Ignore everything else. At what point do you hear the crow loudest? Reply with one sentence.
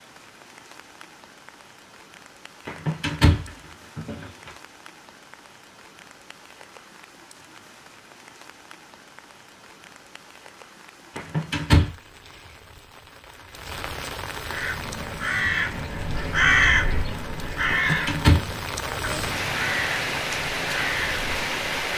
The loudest moment of the crow is at 17 seconds.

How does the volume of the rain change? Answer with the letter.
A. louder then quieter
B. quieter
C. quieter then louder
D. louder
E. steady
D.